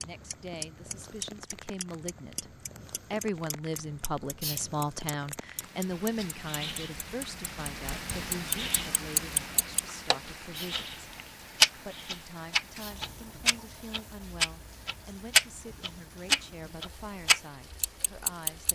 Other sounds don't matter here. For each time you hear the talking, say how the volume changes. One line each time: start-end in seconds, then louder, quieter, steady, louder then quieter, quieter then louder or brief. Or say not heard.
0.0-10.9 louder then quieter
11.8-18.6 steady.